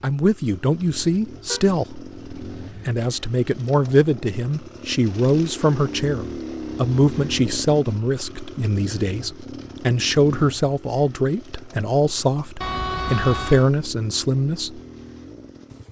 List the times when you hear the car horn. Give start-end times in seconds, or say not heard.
1.4-3.0, 12.6-13.7.